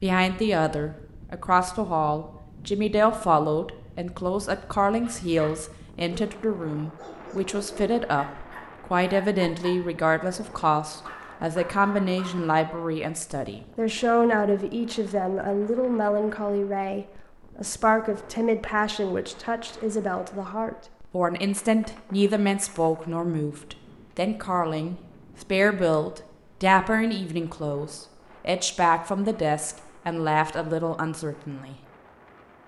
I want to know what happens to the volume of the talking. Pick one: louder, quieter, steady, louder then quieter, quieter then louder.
steady.